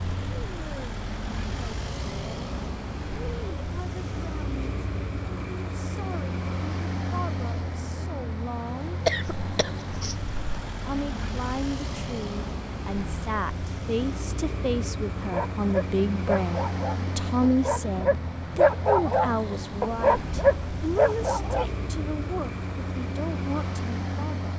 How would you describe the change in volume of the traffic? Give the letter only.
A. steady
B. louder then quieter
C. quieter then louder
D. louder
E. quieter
A.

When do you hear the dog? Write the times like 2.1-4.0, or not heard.
15.3-21.7.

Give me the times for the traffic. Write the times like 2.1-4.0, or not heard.
0.0-24.5.